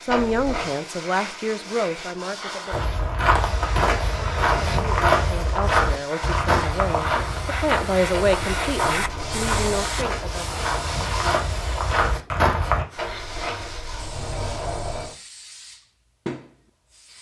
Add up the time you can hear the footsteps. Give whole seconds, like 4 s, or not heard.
10 s.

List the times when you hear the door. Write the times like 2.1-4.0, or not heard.
0.1-0.7, 8.1-9.9, 12.9-15.2.